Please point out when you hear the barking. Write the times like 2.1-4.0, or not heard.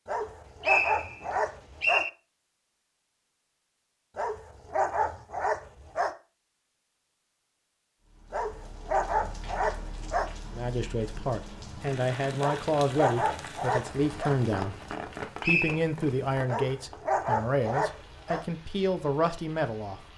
0.1-2.0, 4.2-6.1, 8.3-10.3, 12.4-14.3, 16.4-18.4.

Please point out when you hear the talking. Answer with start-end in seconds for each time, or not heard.
10.5-14.8, 15.4-20.0.